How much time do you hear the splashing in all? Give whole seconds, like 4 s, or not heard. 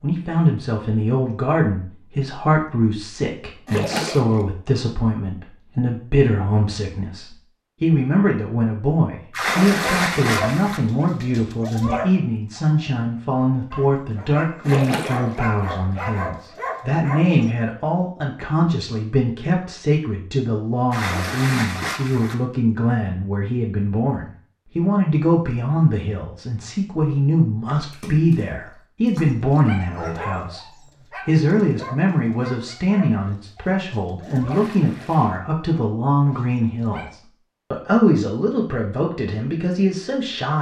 7 s.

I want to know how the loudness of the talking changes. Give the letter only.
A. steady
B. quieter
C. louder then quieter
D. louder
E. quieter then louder
A.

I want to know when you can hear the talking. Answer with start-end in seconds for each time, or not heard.
0.0-40.5.